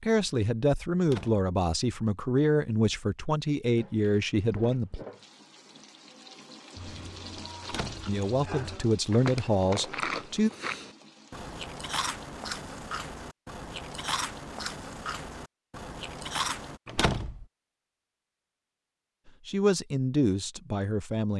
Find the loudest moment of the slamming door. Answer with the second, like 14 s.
17 s.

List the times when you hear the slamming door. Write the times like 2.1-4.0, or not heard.
1.0-1.4, 7.6-8.2, 16.9-17.4.